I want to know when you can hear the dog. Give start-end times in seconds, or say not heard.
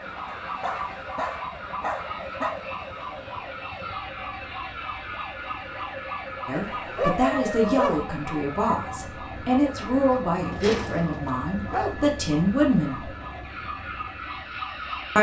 0.2-2.6, 6.5-8.1, 10.4-11.9.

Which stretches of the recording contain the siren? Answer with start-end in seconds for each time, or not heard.
0.0-15.1.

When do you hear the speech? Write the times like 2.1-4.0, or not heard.
6.5-13.1.